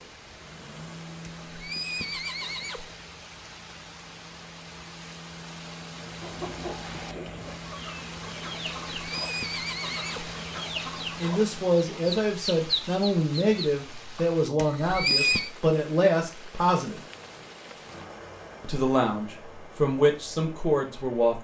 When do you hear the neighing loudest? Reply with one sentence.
The volume of the neighing peaks at 15 seconds.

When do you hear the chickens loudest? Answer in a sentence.
The volume of the chickens peaks at 13 seconds.